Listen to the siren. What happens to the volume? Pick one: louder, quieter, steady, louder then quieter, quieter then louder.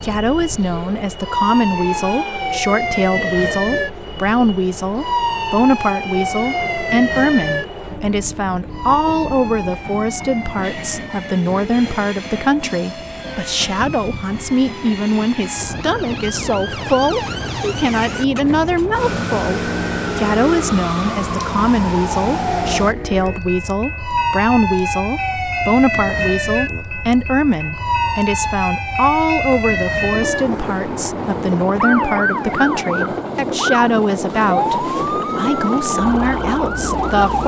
quieter then louder.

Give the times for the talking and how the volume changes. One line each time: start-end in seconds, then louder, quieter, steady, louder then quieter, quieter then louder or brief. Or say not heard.
0.0-37.4 steady.